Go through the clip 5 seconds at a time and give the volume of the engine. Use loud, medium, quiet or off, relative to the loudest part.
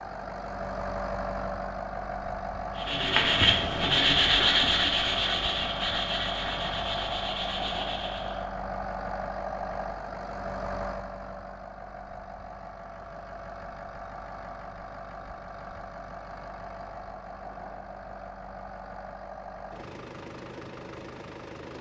loud, loud, medium, medium, medium.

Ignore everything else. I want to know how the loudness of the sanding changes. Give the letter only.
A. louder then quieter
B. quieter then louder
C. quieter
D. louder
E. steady
C.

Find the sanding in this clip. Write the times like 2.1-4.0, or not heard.
2.8-8.4.